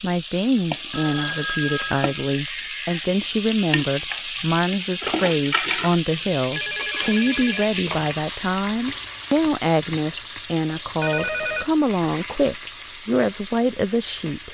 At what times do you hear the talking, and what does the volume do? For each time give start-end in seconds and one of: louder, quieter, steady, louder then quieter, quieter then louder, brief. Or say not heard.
0.0-14.4 steady.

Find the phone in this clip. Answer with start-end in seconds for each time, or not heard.
0.9-2.4, 6.5-8.2, 11.0-11.7.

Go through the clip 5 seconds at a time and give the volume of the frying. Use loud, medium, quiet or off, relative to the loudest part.
loud, loud, medium.